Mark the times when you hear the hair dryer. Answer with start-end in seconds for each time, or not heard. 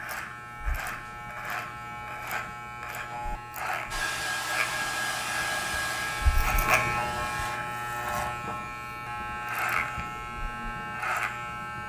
3.9-7.6.